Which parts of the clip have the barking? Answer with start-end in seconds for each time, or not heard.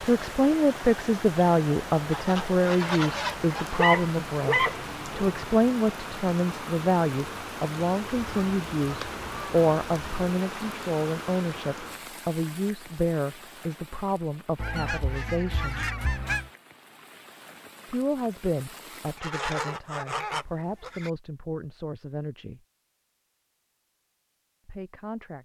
3.8-5.2.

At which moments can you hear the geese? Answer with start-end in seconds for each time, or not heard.
2.1-3.9, 8.1-10.3, 14.6-16.5, 19.1-21.1.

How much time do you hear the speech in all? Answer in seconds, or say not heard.
21 s.